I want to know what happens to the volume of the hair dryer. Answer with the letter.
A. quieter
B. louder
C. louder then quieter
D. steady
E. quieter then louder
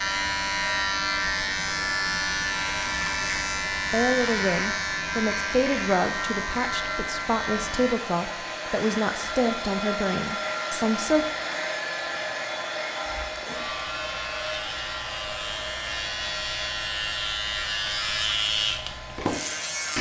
C.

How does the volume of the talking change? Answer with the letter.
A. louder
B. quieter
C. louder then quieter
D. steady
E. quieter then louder
D.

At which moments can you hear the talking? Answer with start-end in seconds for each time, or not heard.
3.9-11.2.